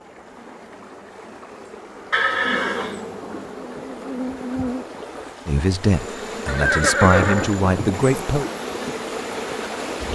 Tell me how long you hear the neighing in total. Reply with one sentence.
You can hear the neighing for 3 seconds altogether.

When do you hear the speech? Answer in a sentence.
You can hear the speech from 5.5 to 8.4 s.